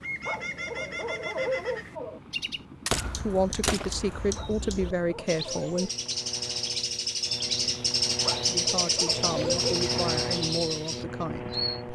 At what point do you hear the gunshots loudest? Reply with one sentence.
The volume of the gunshots peaks at 3 seconds.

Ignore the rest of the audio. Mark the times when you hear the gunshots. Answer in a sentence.
The gunshots can be heard from 2.9 to 4.4 s.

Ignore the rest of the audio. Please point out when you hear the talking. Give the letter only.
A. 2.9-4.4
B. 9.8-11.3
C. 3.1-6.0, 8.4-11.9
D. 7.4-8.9
C.